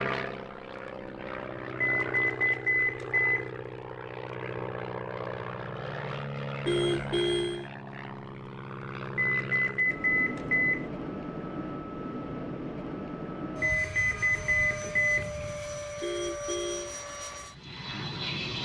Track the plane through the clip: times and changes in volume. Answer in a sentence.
The plane can be heard from 0.0 to 18.6 s, at a steady volume.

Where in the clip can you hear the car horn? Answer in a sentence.
You can hear the car horn from 6.7 to 7.7 s and from 16.0 to 16.9 s.